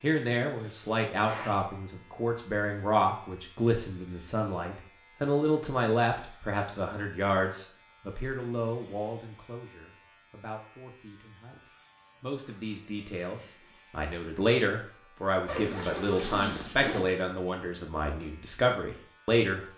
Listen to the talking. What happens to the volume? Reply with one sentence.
The volume of the talking goes down, then up.